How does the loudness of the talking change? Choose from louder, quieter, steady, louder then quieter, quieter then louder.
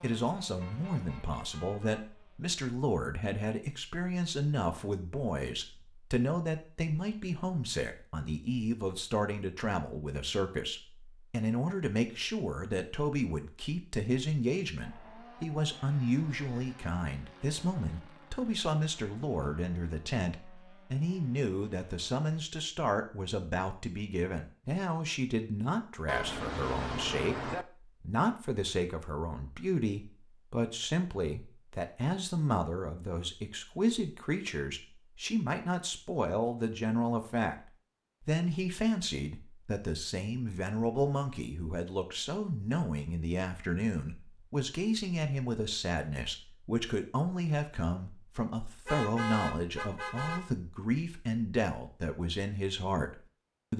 steady.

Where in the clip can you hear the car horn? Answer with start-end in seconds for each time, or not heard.
0.6-2.0, 26.1-27.6, 48.9-50.5.